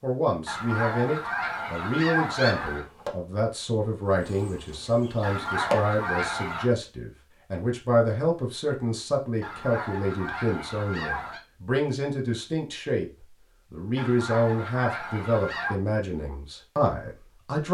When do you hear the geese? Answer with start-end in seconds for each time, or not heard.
0.5-2.9, 5.2-6.7, 9.4-11.4, 13.9-15.8.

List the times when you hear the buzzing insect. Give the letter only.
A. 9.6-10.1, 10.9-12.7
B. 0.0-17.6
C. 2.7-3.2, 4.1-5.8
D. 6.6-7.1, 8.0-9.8
C.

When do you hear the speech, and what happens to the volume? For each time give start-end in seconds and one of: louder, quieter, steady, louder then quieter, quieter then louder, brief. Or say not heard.
0.0-17.6 steady.